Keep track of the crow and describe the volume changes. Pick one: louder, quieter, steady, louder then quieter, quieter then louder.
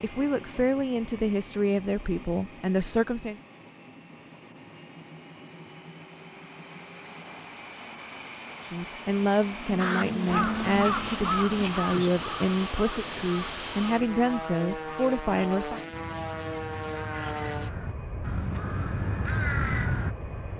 quieter then louder.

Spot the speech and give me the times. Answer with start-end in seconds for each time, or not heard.
0.0-3.4, 8.7-15.8.